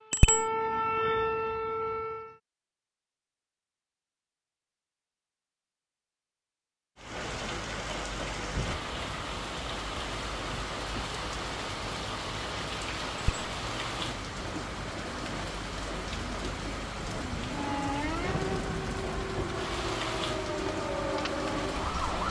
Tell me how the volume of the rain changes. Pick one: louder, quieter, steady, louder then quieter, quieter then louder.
steady.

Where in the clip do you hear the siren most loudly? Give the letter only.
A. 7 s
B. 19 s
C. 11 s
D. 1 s
D.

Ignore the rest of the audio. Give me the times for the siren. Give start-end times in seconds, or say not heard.
0.1-2.4, 17.4-22.2.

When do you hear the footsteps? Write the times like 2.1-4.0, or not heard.
not heard.